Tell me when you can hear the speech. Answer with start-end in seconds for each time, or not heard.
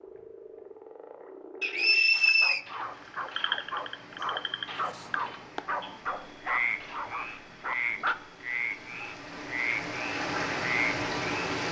not heard.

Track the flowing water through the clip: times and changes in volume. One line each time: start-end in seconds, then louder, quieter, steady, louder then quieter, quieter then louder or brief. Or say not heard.
2.4-11.6 louder.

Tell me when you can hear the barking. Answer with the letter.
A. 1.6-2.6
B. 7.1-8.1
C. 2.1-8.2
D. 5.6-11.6
C.